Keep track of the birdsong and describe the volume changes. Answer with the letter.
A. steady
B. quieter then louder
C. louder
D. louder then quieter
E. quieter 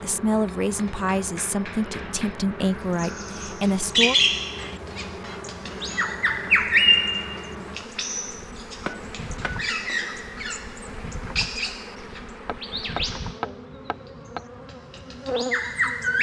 E.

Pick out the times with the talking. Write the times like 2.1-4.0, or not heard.
0.0-4.2.